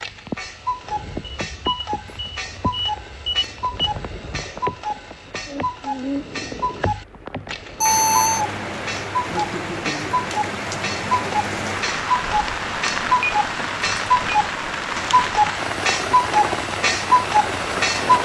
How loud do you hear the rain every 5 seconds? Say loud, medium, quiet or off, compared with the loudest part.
medium, medium, loud, loud.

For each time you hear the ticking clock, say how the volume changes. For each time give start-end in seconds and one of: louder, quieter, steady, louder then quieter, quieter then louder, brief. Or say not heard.
0.0-18.2 louder.